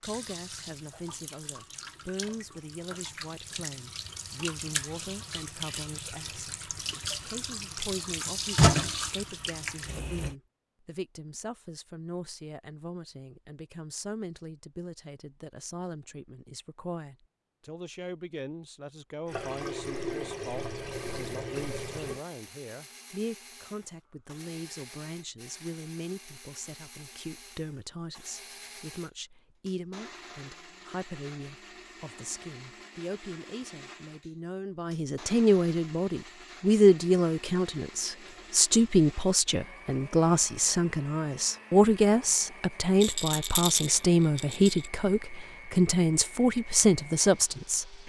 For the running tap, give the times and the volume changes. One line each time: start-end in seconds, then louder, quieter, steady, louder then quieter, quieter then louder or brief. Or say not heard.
0.0-10.3 louder
19.3-22.2 brief.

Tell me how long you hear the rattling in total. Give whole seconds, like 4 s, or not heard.
2 s.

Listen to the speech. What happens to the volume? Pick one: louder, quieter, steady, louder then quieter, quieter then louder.
louder.